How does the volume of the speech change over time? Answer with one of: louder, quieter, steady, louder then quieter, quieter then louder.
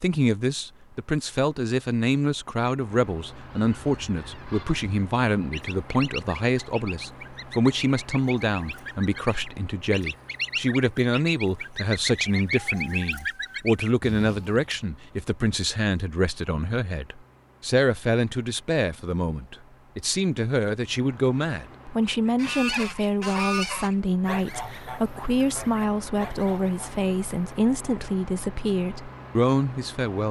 steady.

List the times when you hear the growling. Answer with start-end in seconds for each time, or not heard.
not heard.